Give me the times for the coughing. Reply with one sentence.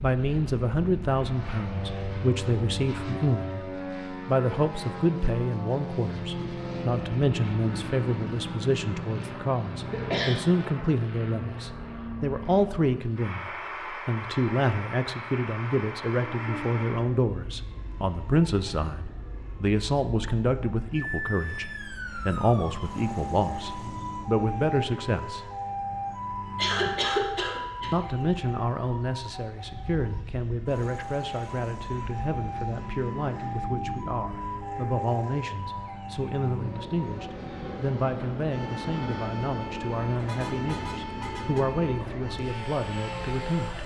You can hear the coughing from 9.8 to 10.4 s and from 26.6 to 27.9 s.